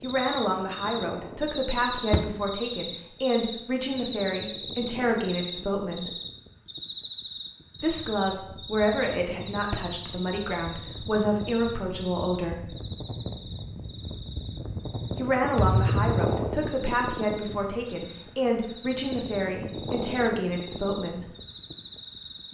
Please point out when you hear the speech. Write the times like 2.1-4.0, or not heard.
0.0-6.1, 7.8-12.7, 15.2-21.2.